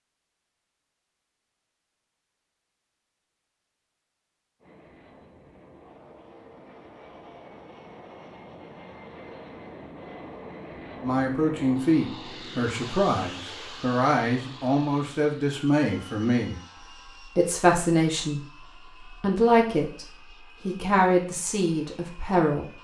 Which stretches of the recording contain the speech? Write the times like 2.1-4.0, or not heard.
11.0-16.6, 17.2-18.4, 19.1-22.6.